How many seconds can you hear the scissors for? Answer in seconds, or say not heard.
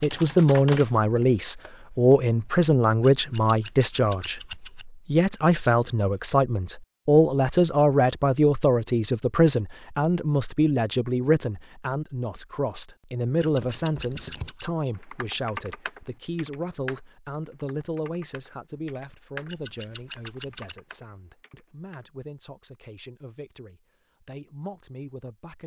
4 s.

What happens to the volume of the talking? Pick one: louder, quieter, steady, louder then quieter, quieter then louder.
quieter.